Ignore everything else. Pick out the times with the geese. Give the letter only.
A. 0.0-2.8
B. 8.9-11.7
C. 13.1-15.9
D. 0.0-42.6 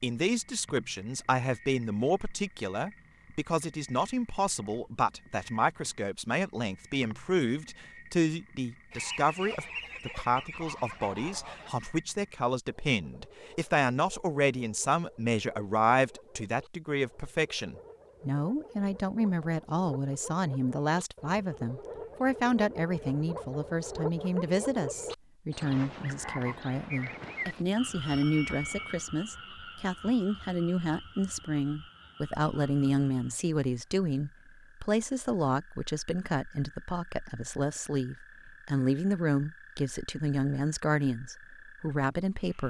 B.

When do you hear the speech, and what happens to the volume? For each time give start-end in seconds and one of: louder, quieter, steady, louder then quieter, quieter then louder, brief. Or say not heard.
0.0-42.6 steady.